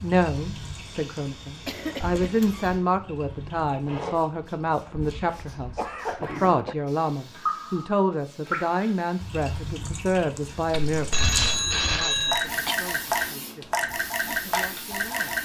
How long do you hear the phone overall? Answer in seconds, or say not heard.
2 s.